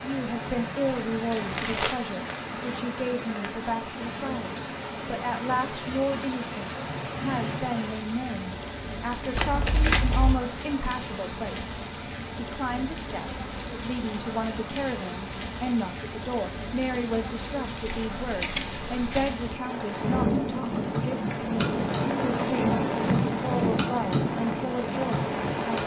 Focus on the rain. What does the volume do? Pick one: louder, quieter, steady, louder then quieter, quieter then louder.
louder.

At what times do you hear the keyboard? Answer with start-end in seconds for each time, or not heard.
20.7-24.2, 24.9-25.8.